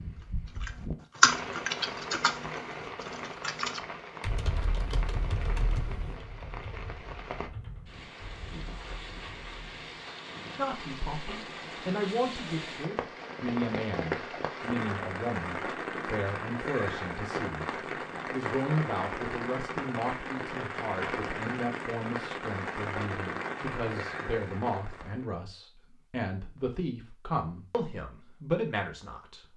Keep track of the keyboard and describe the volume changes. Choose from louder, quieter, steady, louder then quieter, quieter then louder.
quieter.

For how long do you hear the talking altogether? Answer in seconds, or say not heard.
18 s.